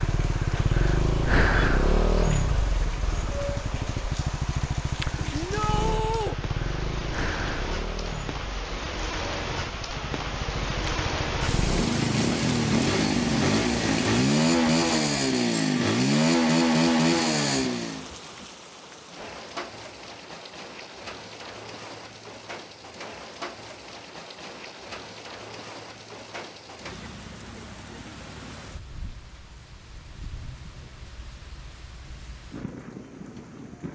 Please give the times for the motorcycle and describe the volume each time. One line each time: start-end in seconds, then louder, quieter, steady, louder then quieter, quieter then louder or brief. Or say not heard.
0.0-18.1 quieter then louder.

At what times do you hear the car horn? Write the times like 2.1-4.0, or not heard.
not heard.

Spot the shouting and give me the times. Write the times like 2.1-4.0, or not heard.
5.3-6.3.